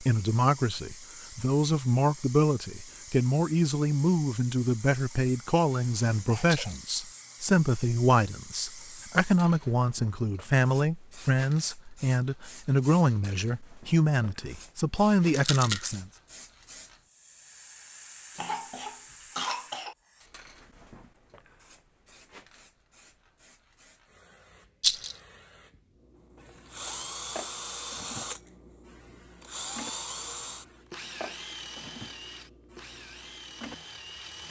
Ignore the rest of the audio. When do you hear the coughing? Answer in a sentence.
The coughing can be heard from 5.7 to 6.8 s and from 18.4 to 19.9 s.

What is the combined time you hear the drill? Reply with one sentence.
You can hear the drill for 8 seconds altogether.